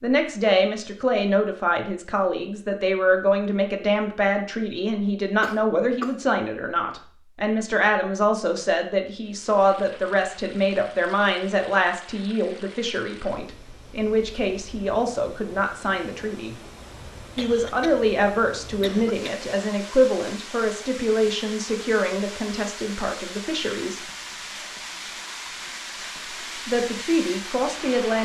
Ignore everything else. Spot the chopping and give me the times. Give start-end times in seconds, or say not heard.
not heard.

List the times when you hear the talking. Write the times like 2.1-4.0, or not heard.
0.0-16.6, 17.4-24.0, 26.6-28.1.